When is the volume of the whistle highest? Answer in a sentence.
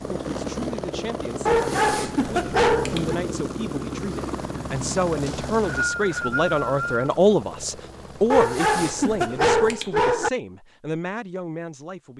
The volume of the whistle peaks at 6 seconds.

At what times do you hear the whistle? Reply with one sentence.
You can hear the whistle from 5.2 to 7.2 s.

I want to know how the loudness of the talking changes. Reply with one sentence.
The volume of the talking goes up, then down.